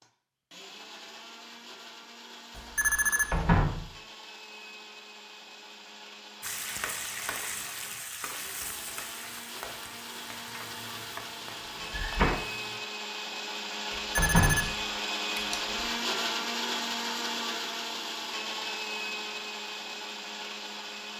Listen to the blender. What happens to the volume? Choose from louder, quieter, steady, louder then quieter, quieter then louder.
louder.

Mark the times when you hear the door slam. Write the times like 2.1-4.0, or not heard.
3.3-3.9, 11.9-12.3, 14.2-14.7.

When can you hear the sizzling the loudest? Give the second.
7 s.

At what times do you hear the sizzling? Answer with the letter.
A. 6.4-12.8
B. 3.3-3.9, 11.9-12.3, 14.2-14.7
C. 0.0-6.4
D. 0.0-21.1
A.